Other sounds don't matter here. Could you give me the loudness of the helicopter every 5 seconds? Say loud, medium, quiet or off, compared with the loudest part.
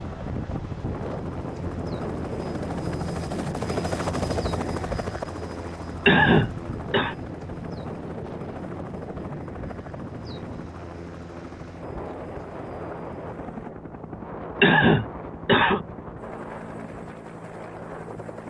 loud, medium, medium, medium.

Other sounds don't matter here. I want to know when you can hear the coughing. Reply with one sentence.
The coughing can be heard from 6.0 to 7.2 s and from 14.6 to 15.8 s.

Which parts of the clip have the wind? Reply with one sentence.
You can hear the wind from 0.0 to 18.4 s.